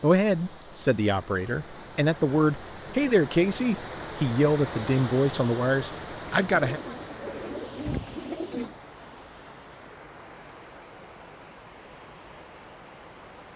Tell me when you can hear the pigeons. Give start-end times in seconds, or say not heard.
6.2-8.8.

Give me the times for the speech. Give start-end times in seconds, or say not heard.
0.0-6.8.